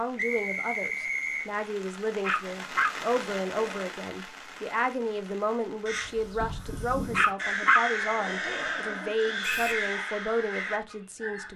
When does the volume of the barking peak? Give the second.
8 s.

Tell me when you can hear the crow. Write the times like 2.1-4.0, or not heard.
5.8-11.5.